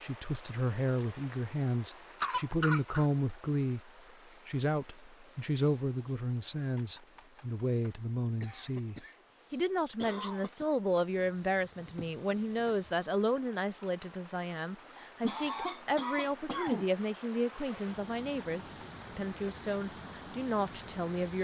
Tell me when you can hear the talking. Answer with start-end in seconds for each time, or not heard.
0.0-21.3.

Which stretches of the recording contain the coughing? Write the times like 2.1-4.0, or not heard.
2.2-3.0, 8.4-9.2, 9.9-10.7, 15.2-16.9.